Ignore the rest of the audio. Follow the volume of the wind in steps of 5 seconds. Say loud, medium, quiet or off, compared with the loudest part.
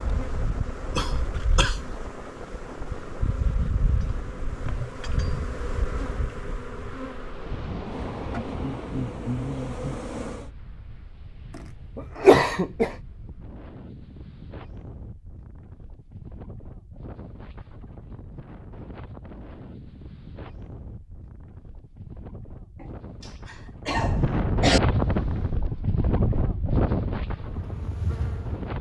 quiet, medium, quiet, quiet, loud, loud.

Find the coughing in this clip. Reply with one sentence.
The coughing can be heard from 0.9 to 1.8 s, from 11.9 to 12.9 s and from 22.8 to 24.8 s.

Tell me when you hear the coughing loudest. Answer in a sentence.
The volume of the coughing peaks at 12 seconds.